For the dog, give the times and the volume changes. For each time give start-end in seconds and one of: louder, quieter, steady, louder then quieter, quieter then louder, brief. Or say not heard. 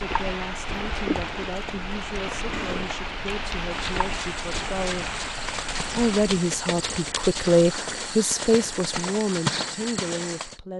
not heard.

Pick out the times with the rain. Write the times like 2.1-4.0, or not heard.
0.0-6.4.